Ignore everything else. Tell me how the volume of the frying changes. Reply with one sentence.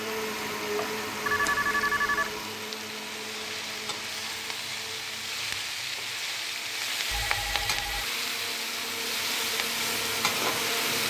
The loudness of the frying goes up.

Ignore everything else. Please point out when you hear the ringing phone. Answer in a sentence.
The ringing phone can be heard from 1.2 to 2.4 s and from 7.1 to 8.1 s.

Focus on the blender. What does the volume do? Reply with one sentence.
The volume of the blender goes down, then up.